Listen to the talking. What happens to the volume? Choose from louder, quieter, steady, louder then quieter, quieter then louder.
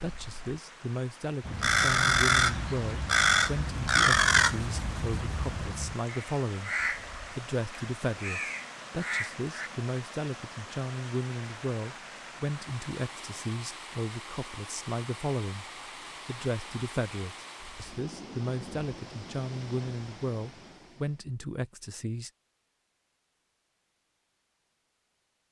steady.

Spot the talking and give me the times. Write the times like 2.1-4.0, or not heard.
0.0-6.8, 7.3-15.7, 16.2-22.3.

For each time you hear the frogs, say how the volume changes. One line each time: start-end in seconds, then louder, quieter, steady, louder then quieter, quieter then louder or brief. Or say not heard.
not heard.